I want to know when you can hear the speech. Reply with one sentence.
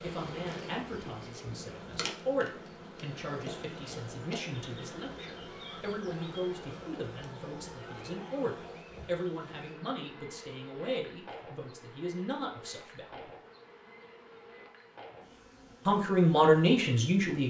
The speech can be heard from 0.0 to 13.3 s and from 15.8 to 17.4 s.